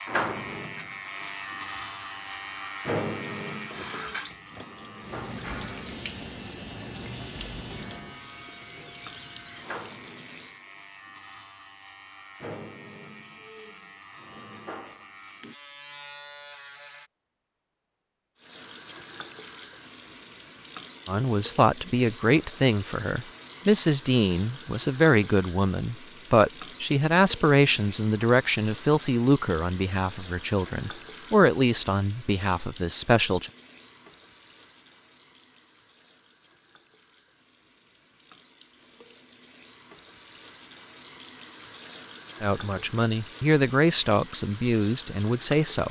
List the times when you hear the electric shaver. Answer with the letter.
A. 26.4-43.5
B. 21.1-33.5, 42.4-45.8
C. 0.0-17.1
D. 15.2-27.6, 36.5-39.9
C.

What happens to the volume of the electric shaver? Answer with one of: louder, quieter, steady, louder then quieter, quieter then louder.
quieter.